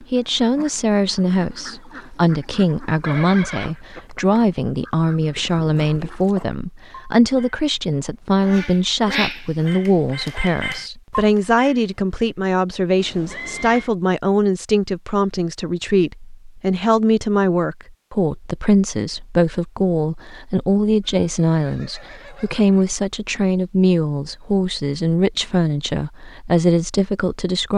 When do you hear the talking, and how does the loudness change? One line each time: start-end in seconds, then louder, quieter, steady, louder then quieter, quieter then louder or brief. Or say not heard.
0.0-27.7 steady.